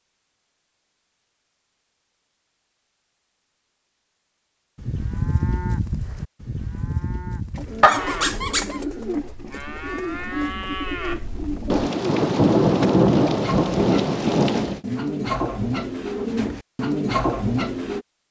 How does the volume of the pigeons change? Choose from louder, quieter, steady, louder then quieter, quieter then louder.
louder.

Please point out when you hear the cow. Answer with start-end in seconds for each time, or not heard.
4.8-11.9.